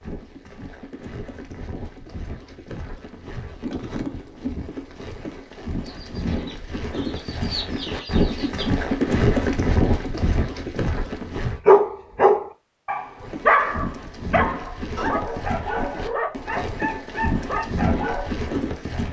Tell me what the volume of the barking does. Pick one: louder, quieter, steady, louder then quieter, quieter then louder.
quieter.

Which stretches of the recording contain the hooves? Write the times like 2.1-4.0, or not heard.
0.0-11.6, 13.2-19.0.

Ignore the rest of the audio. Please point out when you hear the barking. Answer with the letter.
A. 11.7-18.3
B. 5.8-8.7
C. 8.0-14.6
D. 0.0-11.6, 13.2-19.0
A.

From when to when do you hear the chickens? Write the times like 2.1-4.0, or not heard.
5.8-8.7.